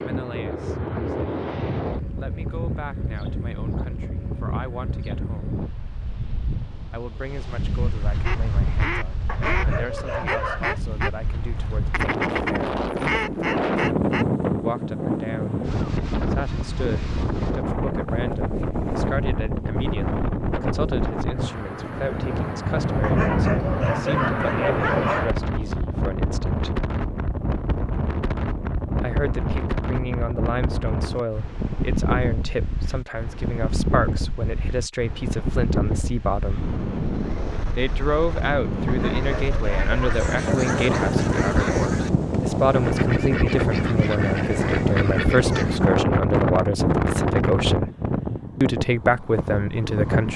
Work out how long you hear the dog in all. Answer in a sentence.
You can hear the dog for 7 seconds altogether.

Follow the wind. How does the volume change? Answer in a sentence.
The loudness of the wind goes up.